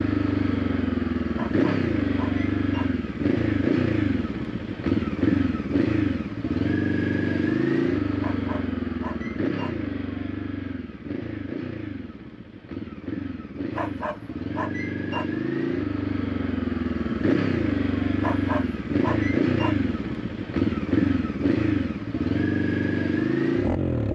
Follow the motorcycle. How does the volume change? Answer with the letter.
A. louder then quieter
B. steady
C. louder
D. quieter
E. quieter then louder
E.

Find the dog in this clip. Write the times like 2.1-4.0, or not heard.
1.4-2.9, 8.2-9.8, 13.8-15.3, 18.2-19.8.